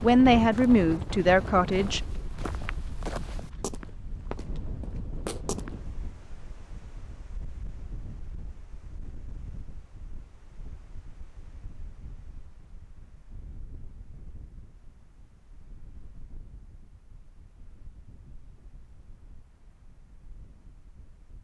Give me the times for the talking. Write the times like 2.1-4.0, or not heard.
0.0-2.0.